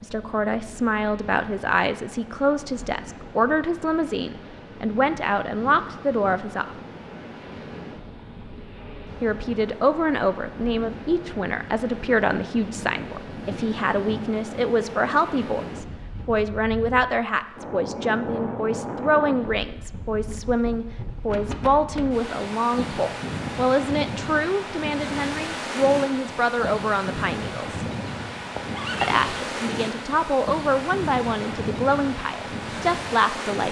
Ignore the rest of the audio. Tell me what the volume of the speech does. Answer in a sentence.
The loudness of the speech stays about the same.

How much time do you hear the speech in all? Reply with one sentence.
You can hear the speech for 30 seconds altogether.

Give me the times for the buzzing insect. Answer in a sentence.
You can't hear the buzzing insect here.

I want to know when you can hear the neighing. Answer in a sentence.
You can hear the neighing from 28.4 to 29.4 s.